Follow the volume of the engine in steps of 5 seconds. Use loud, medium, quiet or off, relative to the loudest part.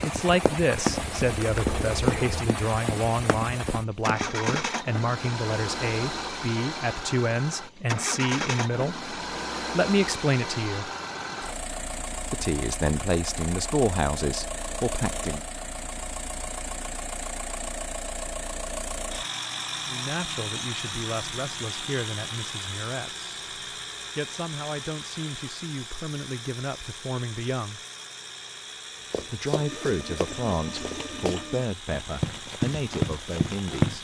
loud, loud, loud, loud, loud, medium, medium.